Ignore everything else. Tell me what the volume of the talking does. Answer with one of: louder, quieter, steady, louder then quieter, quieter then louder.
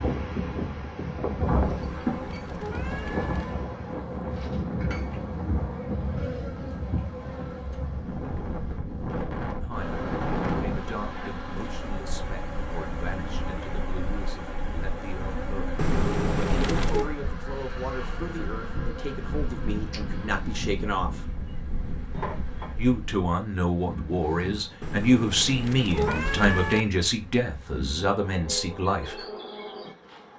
louder.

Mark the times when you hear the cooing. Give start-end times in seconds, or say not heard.
not heard.